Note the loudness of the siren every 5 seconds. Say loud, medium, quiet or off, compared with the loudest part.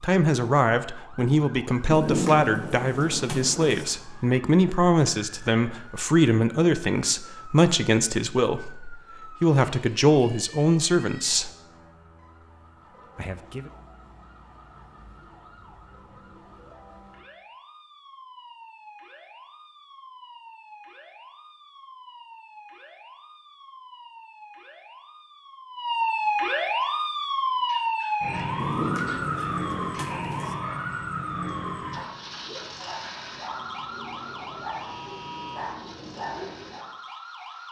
quiet, quiet, quiet, quiet, quiet, loud, medium, quiet.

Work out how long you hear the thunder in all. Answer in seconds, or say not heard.
4 s.